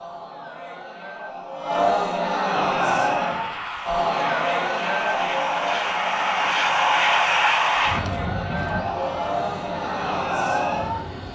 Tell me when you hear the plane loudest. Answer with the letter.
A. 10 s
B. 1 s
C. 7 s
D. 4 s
C.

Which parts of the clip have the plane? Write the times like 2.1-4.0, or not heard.
2.9-11.2.